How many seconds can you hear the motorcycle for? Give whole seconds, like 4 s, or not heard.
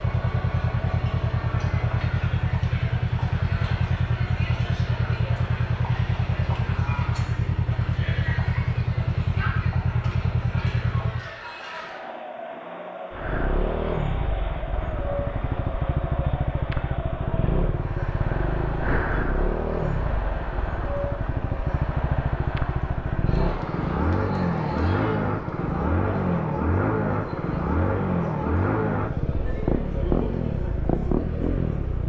30 s.